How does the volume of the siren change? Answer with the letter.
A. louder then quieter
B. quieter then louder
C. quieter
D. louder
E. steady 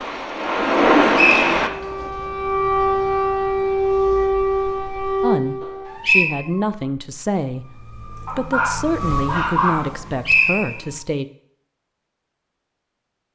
B.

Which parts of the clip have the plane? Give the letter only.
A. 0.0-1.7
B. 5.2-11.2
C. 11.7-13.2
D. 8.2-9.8
A.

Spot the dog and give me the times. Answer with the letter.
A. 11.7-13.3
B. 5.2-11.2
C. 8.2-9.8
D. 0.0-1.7
C.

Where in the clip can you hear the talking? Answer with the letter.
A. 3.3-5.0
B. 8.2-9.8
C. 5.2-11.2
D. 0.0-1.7
C.